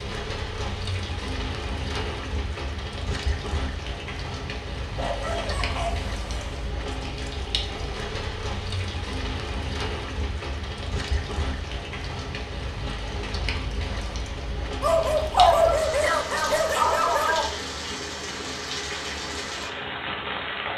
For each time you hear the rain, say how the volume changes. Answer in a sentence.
You can hear the rain from 0.0 to 20.7 s, at a steady volume.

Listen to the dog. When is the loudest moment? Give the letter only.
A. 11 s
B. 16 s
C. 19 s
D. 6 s
B.